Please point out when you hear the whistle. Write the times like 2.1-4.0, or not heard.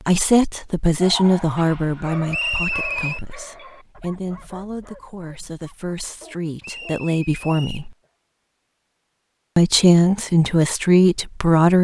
2.3-3.2, 6.6-7.9.